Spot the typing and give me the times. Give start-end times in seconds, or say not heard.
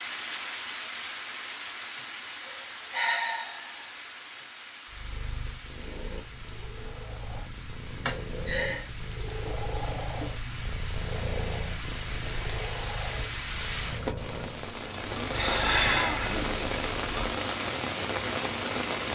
not heard.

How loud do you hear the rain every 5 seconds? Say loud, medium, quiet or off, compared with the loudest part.
medium, quiet, medium, loud.